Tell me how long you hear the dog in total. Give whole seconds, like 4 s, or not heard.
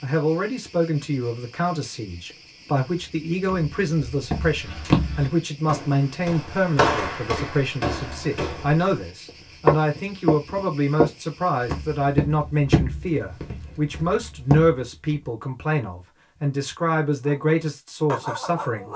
2 s.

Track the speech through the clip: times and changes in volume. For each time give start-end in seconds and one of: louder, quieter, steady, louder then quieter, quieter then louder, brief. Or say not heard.
0.0-18.9 steady.